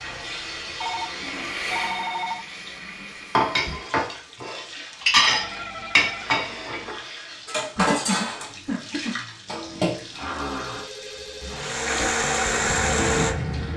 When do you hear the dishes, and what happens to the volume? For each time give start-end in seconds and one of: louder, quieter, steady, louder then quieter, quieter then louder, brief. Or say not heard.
3.4-10.2 louder then quieter.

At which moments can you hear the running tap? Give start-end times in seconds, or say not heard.
0.0-13.7.